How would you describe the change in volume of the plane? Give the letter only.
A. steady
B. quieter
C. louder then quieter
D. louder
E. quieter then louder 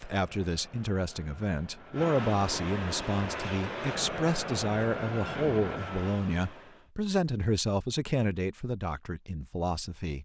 D.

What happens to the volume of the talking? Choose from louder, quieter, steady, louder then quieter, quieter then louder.
steady.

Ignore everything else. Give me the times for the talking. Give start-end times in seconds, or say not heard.
0.0-10.1.